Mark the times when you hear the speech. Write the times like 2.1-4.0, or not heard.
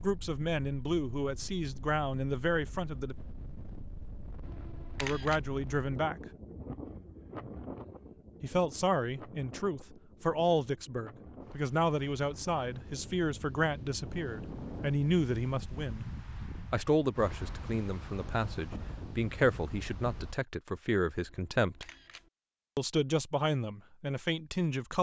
0.0-3.1, 5.0-6.2, 8.4-16.1, 16.7-21.9, 22.8-24.9.